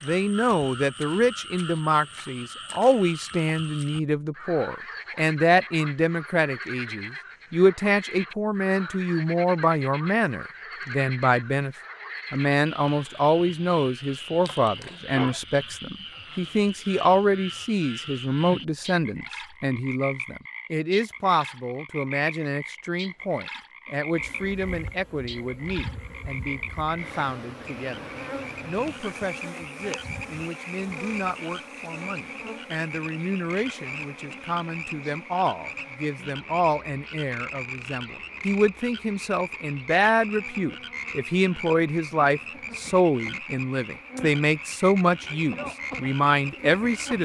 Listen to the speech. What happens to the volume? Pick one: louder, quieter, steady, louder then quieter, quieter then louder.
quieter then louder.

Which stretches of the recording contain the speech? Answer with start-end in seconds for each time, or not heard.
0.0-47.1.